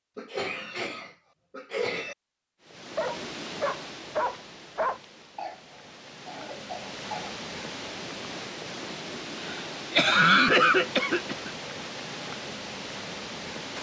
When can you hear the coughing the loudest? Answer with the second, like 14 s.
10 s.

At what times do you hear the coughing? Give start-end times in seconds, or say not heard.
0.1-2.1, 5.3-7.3, 9.4-11.5.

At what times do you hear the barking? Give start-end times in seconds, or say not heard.
3.0-5.0.